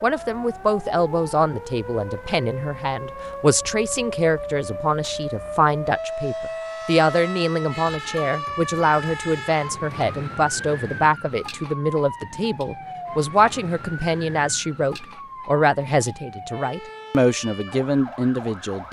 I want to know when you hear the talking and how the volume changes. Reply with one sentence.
The talking can be heard from 0.0 to 18.8 s, at a steady volume.